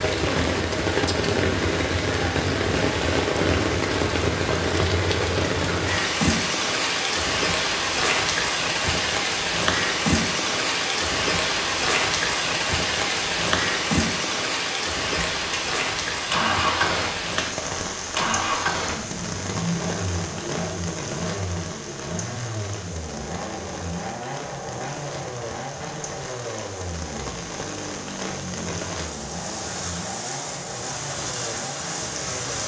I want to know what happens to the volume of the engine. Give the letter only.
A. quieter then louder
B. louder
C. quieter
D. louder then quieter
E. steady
C.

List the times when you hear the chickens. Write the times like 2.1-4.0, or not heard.
not heard.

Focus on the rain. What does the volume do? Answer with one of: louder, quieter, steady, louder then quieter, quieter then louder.
quieter.